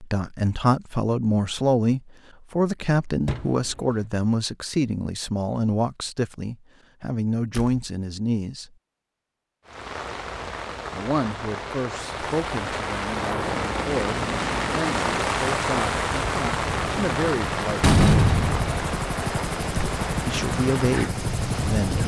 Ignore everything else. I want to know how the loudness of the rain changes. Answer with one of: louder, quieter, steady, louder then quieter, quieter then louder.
louder then quieter.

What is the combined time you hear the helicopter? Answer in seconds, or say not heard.
9 s.